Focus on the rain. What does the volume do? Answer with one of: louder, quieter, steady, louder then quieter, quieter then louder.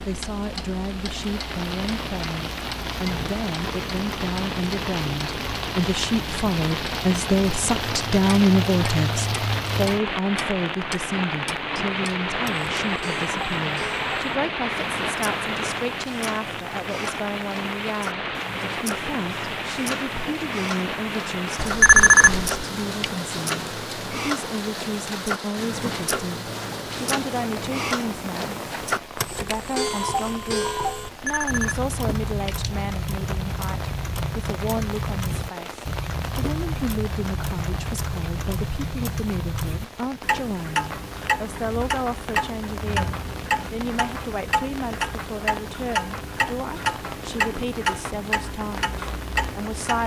quieter.